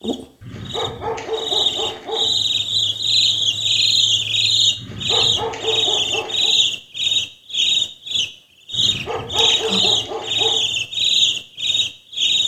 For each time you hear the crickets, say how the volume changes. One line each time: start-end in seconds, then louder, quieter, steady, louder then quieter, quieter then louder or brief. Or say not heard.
0.0-12.4 steady.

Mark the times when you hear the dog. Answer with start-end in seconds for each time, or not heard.
0.4-2.3, 4.8-6.5, 8.7-10.6.